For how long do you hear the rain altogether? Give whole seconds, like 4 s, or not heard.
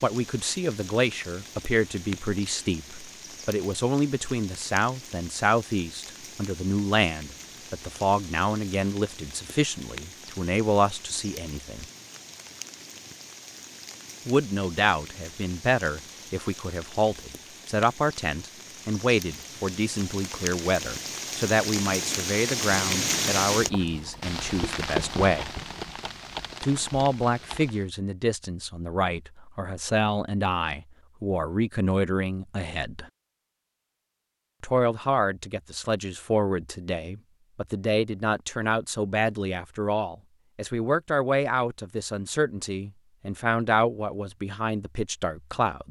28 s.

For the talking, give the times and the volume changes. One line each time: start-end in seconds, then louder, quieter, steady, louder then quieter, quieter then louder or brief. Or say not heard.
0.0-11.8 steady
14.2-25.5 steady
26.6-33.0 steady
34.6-45.8 steady.